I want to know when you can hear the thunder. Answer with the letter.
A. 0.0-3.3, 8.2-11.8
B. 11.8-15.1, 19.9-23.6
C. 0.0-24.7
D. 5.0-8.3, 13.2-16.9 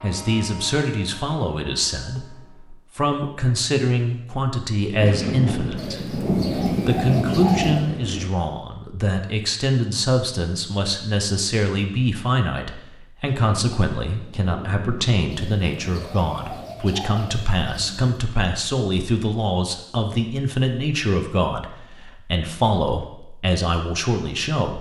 D.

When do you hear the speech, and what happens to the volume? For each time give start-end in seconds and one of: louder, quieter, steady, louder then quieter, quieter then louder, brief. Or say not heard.
0.0-24.7 steady.